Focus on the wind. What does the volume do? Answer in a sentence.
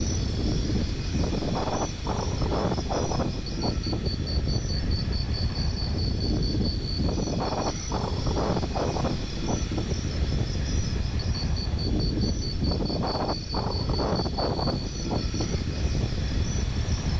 The loudness of the wind stays about the same.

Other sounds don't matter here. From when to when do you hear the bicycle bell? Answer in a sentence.
You can't hear the bicycle bell here.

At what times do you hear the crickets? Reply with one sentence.
The crickets can be heard from 0.0 to 17.1 s.